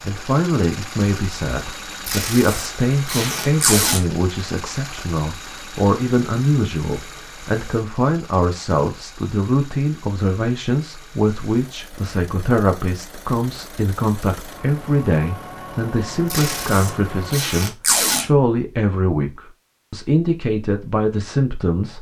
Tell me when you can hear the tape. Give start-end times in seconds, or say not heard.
2.0-4.0, 16.3-18.2.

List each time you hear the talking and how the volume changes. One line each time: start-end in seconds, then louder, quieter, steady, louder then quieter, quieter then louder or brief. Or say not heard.
0.0-21.9 steady.